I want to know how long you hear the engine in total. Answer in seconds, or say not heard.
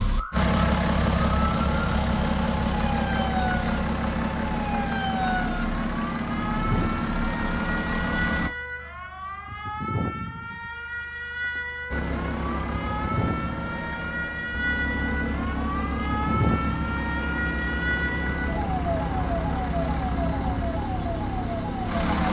19 s.